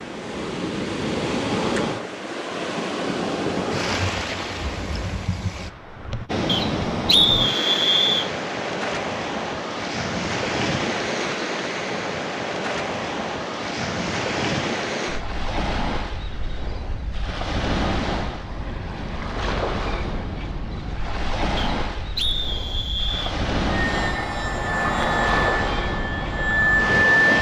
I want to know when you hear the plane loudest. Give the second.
27 s.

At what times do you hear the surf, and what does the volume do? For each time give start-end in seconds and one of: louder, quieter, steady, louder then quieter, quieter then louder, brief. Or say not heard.
0.0-27.3 steady.